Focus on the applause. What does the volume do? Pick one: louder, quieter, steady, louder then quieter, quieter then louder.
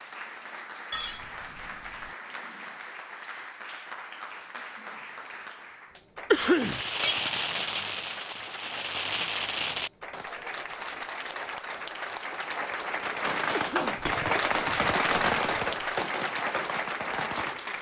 louder.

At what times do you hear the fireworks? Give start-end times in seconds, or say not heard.
6.5-10.2, 13.0-17.7.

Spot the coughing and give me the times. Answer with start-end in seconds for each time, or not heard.
6.3-6.8, 13.5-14.1.